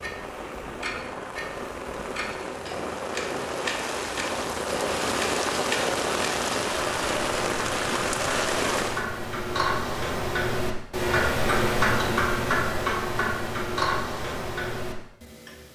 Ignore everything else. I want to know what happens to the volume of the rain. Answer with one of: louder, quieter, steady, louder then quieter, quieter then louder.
louder.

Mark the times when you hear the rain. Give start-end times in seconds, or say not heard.
0.0-9.1.